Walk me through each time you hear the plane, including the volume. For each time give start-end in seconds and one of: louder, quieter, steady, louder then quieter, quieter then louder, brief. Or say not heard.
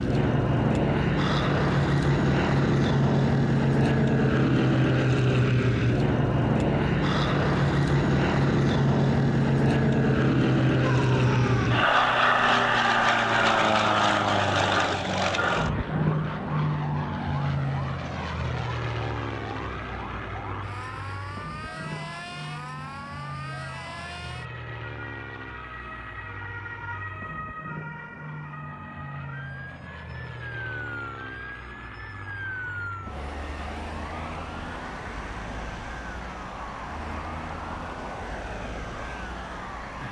0.0-40.0 quieter.